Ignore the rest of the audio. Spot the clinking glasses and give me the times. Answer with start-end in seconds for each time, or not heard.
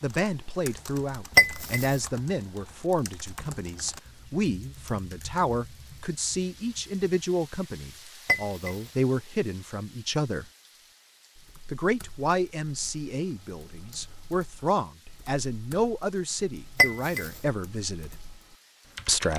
1.4-1.9, 8.2-8.8, 16.8-17.3.